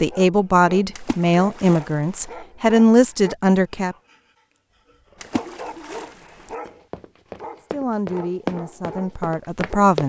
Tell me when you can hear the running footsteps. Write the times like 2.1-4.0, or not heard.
6.7-10.0.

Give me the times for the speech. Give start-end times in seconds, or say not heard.
0.0-4.0, 7.6-10.0.